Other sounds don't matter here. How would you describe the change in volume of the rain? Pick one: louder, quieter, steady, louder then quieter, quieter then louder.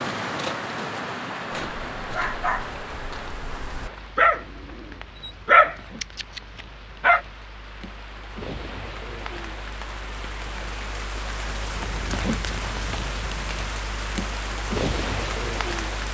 quieter then louder.